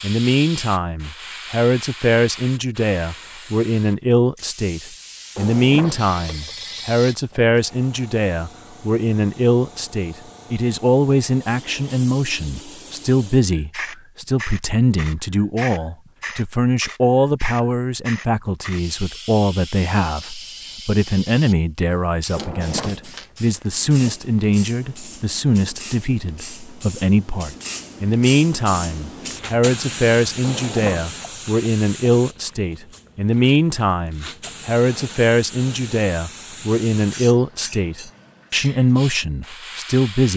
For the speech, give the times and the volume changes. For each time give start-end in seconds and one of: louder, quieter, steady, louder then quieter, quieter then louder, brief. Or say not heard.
0.0-40.3 steady.